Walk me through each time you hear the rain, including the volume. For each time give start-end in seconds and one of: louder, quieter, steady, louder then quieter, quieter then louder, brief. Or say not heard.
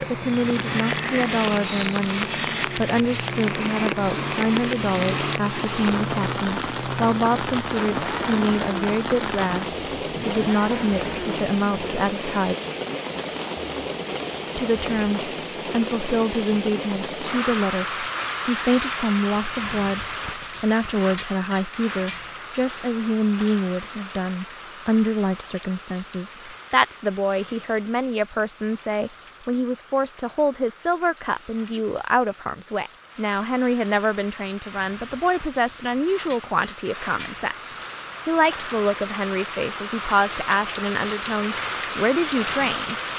0.0-43.1 quieter then louder.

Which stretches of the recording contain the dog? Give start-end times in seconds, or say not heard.
not heard.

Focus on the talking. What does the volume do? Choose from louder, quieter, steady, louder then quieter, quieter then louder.
steady.